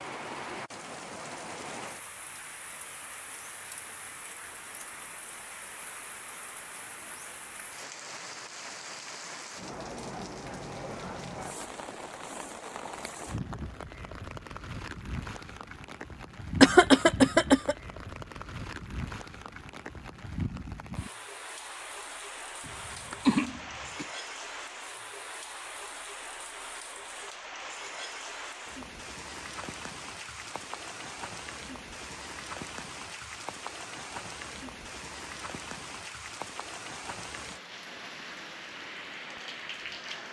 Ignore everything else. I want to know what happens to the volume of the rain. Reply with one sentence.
The loudness of the rain stays about the same.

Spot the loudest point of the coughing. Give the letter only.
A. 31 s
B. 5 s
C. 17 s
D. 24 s
C.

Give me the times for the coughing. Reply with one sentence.
The coughing can be heard from 16.6 to 17.8 s and from 22.6 to 24.1 s.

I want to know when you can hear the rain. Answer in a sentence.
You can hear the rain from 0.0 to 40.2 s.